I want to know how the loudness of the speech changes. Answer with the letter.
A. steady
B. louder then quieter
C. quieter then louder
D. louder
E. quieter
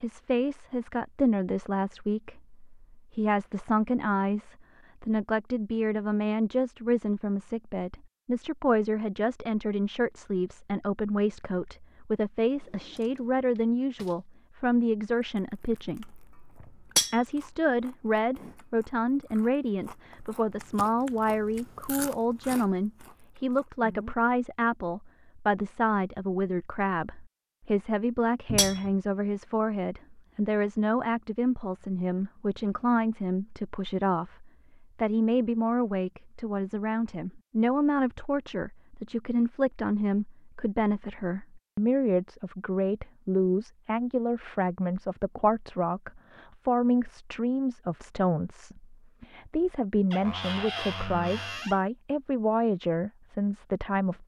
A.